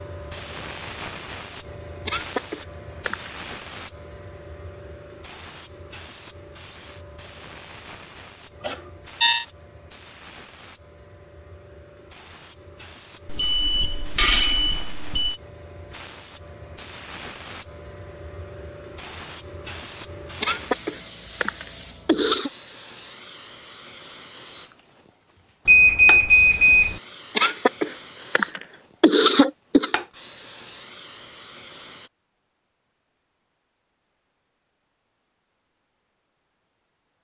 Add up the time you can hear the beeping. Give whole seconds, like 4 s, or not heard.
4 s.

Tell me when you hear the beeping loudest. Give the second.
26 s.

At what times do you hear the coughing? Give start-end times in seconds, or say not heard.
2.0-3.4, 20.4-22.5, 27.4-29.9.